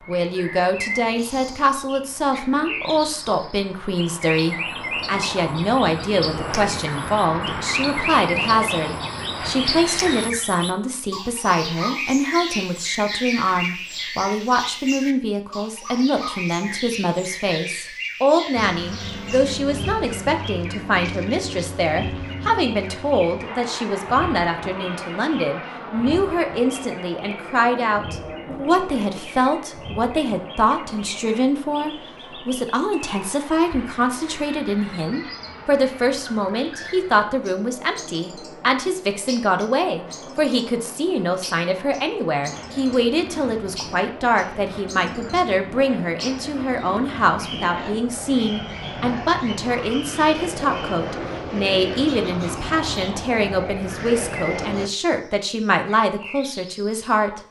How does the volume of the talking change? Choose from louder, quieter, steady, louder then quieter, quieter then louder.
steady.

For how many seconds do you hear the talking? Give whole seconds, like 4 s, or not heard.
57 s.